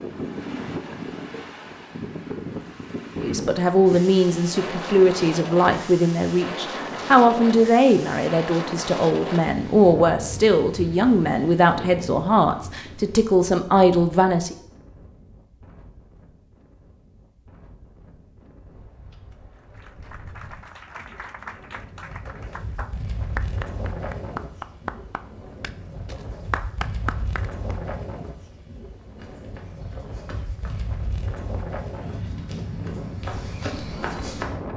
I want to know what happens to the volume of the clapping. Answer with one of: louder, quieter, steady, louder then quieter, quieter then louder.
louder.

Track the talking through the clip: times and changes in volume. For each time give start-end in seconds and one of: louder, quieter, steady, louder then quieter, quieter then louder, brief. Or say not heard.
3.2-14.6 steady.